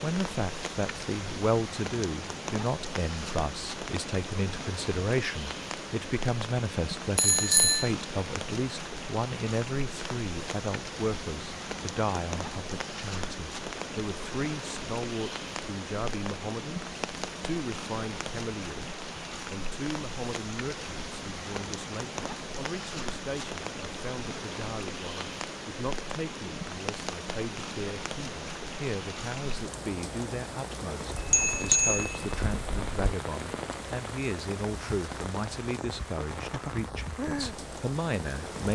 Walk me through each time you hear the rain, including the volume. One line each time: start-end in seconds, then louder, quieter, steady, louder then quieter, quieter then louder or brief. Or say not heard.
0.0-38.7 steady.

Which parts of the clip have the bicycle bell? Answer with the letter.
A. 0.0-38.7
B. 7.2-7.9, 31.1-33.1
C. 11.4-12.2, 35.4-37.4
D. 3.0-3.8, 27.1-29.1
B.